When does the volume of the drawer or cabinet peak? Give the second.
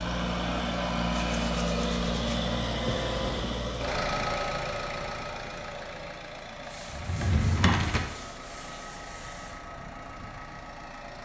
8 s.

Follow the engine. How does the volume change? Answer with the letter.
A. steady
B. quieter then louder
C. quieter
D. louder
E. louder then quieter
C.